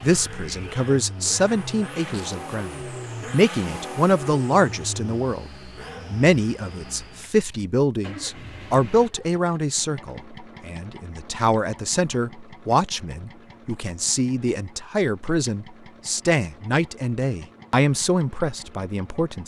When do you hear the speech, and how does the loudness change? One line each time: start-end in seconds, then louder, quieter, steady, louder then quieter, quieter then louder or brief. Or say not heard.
0.0-5.5 quieter then louder
6.1-19.4 steady.